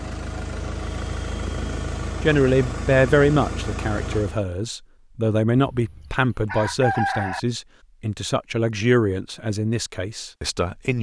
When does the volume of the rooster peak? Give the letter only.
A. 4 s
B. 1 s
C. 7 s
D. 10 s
C.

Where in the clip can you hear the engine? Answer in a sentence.
The engine can be heard from 0.0 to 4.5 s.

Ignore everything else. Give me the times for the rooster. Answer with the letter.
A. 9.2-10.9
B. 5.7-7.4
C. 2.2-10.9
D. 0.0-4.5
B.